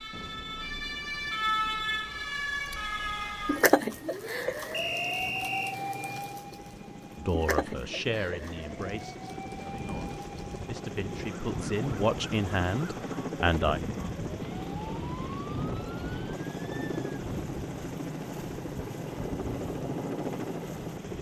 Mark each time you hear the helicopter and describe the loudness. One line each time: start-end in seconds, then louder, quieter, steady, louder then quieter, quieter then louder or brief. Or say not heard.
0.0-21.1 louder.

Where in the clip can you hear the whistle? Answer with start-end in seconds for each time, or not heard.
4.7-5.8.